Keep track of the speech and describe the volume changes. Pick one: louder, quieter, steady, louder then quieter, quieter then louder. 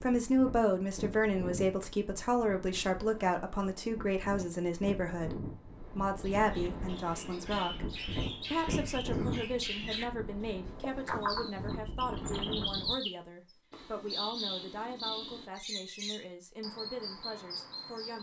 quieter.